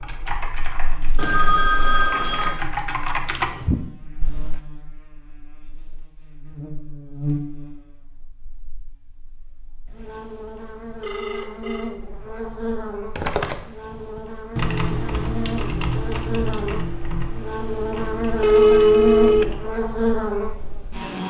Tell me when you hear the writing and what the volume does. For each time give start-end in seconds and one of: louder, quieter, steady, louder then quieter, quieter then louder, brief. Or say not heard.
not heard.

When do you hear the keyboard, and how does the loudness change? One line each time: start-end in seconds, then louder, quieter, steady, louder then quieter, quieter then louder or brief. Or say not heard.
0.0-4.7 quieter then louder
13.2-19.6 quieter.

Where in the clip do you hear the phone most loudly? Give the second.
19 s.